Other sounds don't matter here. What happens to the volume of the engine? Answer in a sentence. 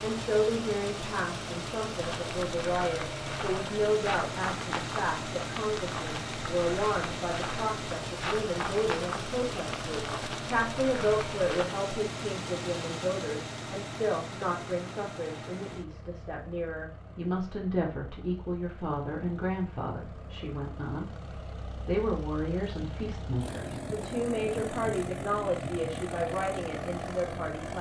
The volume of the engine goes down, then up.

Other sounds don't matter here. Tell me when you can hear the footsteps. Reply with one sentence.
You can hear the footsteps from 2.0 to 11.7 s.